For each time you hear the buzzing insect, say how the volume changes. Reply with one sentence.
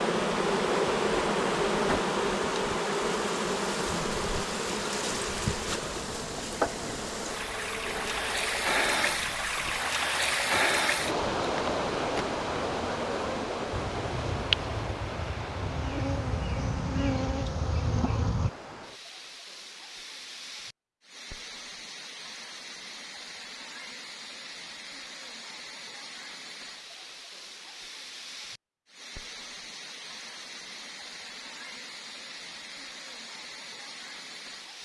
You can hear the buzzing insect from 0.0 to 18.5 s, getting quieter then louder.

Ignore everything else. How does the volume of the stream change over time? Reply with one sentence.
The loudness of the stream goes down.